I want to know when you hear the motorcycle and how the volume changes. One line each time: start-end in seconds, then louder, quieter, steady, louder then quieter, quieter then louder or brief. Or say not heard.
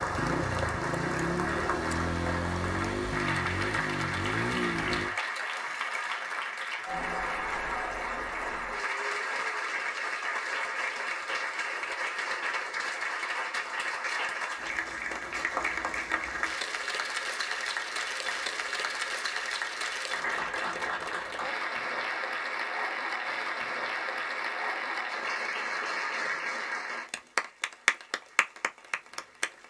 0.0-5.2 steady.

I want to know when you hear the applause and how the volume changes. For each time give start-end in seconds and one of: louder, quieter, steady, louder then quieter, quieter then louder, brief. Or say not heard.
0.0-29.6 steady.